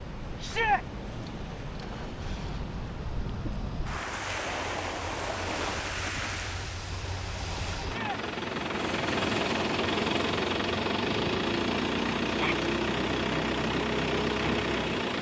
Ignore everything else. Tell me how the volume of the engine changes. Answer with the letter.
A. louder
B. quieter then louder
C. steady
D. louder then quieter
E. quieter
A.